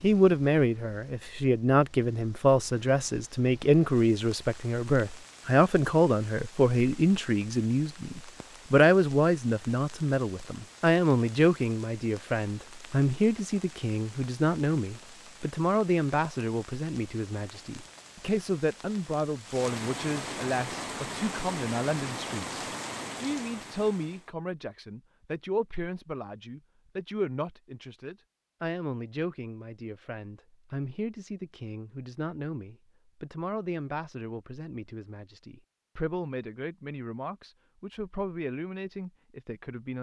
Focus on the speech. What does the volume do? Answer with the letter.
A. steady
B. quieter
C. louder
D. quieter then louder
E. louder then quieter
B.